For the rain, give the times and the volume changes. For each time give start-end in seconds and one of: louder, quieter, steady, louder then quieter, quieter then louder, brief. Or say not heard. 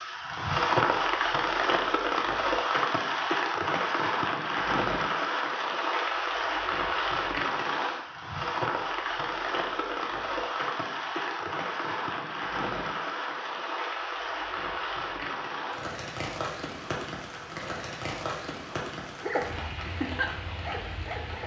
0.0-21.4 quieter.